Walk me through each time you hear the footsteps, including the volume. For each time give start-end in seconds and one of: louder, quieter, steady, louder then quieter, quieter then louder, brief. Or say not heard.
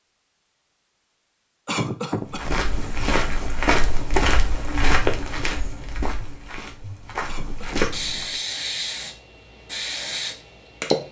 2.3-8.2 quieter then louder.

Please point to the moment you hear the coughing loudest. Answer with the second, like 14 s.
2 s.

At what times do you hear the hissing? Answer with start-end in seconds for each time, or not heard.
7.9-11.0.